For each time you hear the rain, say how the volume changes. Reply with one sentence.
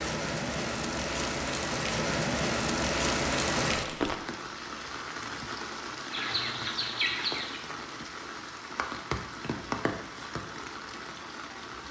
The rain can be heard from 0.0 to 11.8 s, getting quieter.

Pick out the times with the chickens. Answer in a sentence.
The chickens can be heard from 6.1 to 7.6 s.